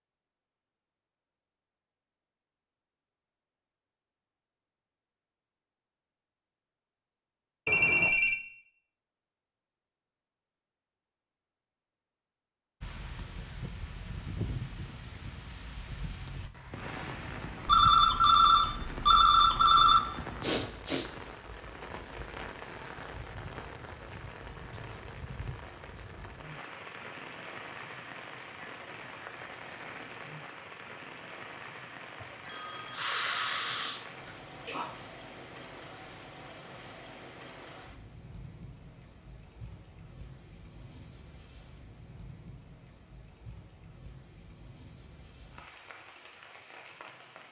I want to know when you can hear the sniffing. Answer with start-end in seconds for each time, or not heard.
20.4-21.1, 32.2-34.9.